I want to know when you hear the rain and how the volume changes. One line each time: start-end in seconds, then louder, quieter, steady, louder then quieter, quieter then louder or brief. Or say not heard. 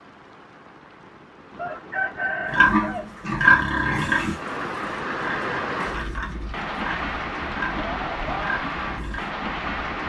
0.0-10.0 louder.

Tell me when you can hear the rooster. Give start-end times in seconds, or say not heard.
1.6-3.0.